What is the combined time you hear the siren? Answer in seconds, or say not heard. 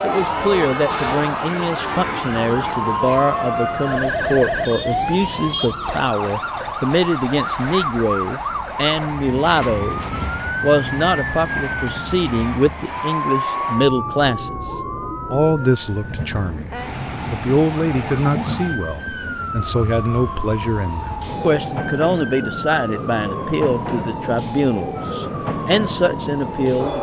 27 s.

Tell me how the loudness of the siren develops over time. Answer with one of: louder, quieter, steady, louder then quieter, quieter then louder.
quieter.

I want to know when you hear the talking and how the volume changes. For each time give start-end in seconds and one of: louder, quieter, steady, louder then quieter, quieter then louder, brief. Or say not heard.
0.0-14.5 steady
15.3-16.7 brief
17.3-26.9 steady.